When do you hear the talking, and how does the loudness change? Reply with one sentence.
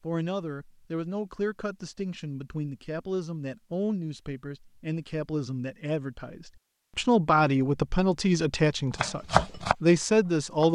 You can hear the talking from 0.0 to 10.7 s, getting louder.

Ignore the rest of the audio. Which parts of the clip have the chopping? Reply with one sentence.
You can hear the chopping from 8.9 to 10.7 s.